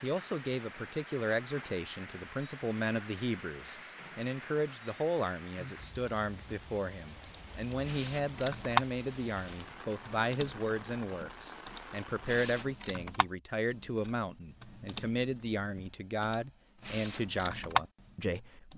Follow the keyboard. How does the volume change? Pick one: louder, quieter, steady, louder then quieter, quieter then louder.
quieter then louder.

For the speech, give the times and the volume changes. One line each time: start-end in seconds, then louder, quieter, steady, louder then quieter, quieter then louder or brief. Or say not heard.
0.0-18.7 steady.